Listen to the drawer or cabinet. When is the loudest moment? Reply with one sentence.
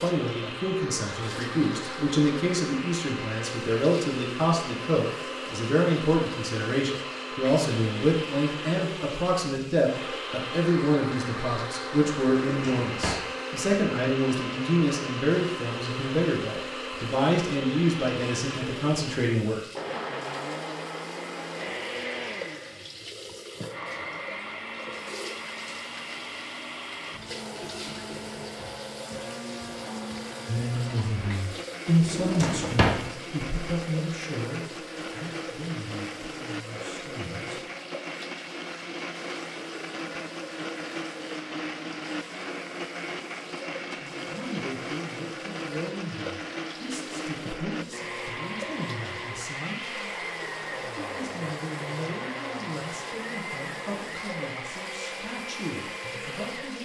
The loudest moment of the drawer or cabinet is at 33 seconds.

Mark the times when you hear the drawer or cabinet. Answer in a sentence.
You can hear the drawer or cabinet from 12.5 to 13.2 s and from 32.0 to 33.0 s.